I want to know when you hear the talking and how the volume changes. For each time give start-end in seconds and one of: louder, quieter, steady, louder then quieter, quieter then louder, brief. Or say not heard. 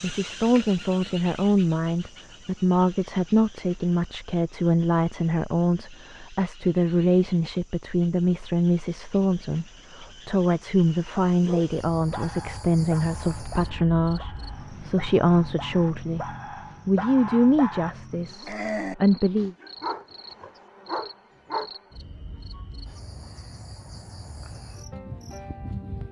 0.0-19.6 steady.